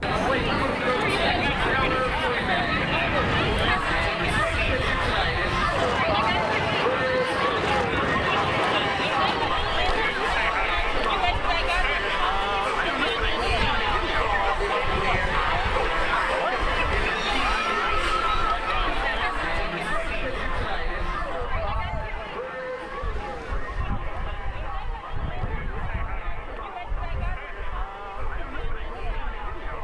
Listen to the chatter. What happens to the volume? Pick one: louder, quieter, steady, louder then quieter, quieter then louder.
quieter.